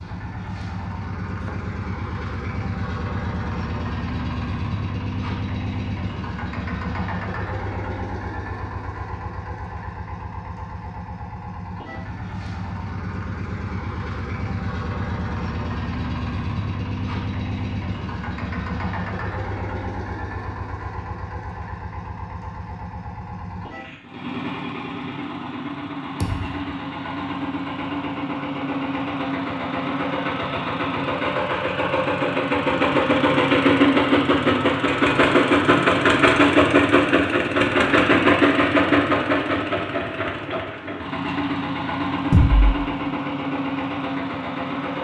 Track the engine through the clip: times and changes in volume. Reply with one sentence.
The engine can be heard from 0.0 to 44.9 s, getting louder.